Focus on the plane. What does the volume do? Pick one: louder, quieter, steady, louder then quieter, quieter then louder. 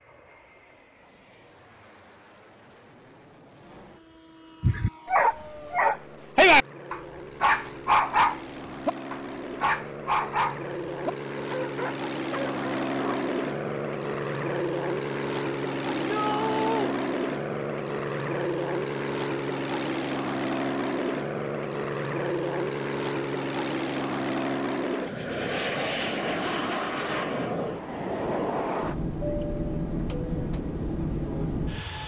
louder.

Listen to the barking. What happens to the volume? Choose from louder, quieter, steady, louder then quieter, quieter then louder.
quieter.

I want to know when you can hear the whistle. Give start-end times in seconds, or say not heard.
not heard.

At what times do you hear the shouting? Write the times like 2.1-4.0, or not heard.
16.0-16.9.